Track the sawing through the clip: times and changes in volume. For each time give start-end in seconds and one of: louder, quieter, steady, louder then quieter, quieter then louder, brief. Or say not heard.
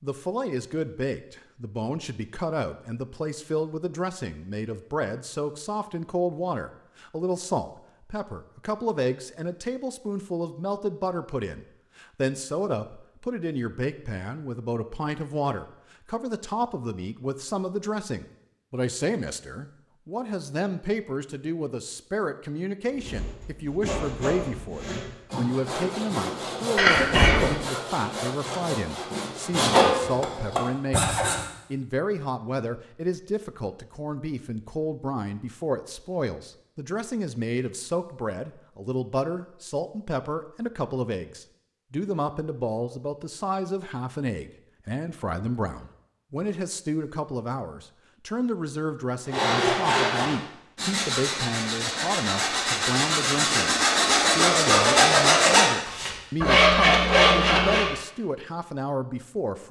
22.9-31.4 louder
49.3-57.9 louder.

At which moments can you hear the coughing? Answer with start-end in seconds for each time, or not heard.
26.8-27.5.